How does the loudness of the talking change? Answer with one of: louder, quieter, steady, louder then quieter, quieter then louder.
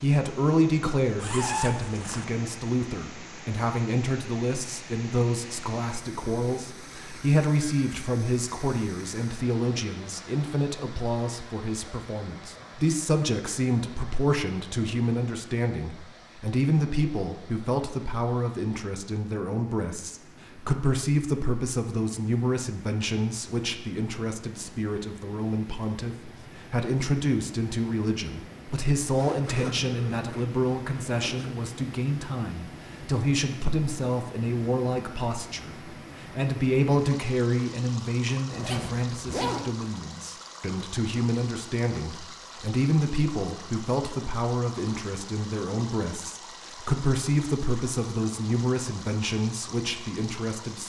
steady.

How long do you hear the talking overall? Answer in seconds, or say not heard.
51 s.